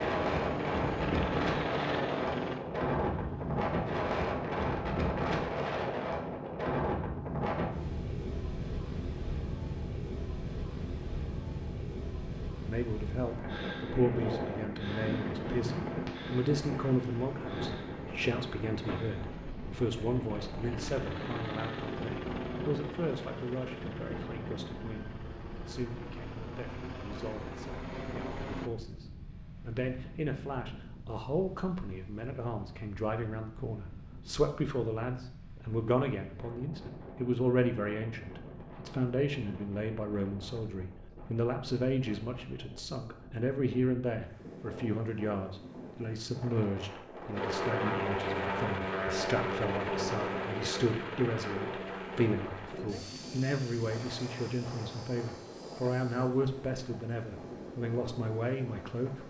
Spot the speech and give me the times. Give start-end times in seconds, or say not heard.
12.7-59.2.